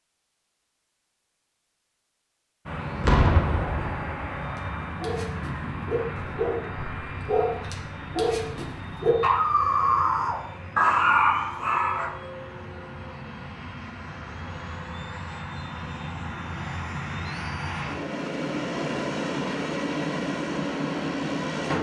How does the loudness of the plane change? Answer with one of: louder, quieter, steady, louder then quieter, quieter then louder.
quieter then louder.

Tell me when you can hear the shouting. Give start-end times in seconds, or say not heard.
not heard.